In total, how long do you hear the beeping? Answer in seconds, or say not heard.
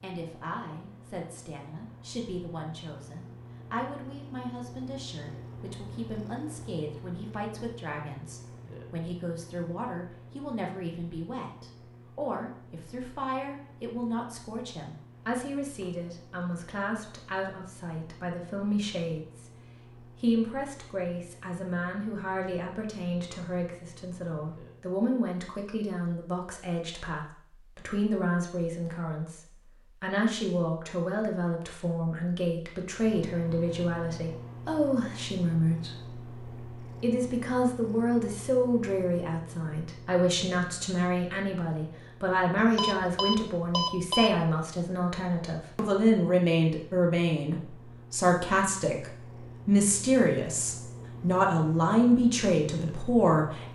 2 s.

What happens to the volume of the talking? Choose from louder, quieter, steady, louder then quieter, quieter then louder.
louder.